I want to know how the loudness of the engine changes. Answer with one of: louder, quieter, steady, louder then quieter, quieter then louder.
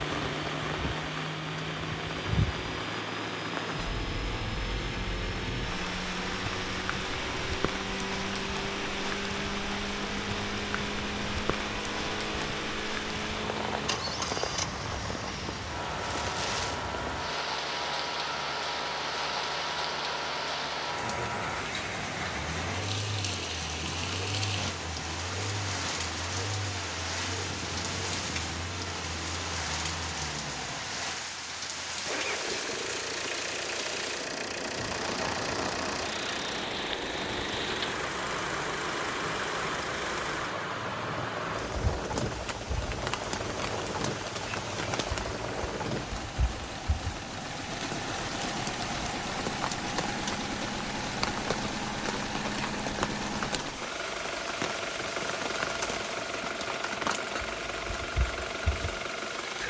steady.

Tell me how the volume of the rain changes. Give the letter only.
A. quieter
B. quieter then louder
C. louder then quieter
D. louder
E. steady
E.